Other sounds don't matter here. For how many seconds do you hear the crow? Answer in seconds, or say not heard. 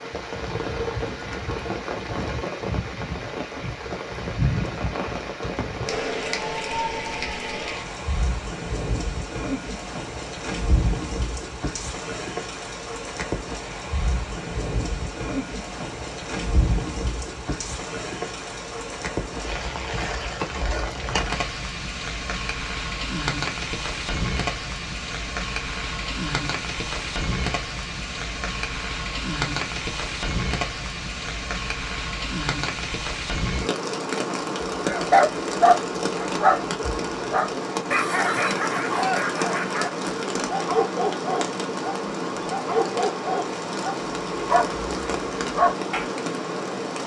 not heard.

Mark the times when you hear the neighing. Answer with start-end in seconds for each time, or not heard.
not heard.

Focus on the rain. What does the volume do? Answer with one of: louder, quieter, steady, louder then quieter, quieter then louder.
steady.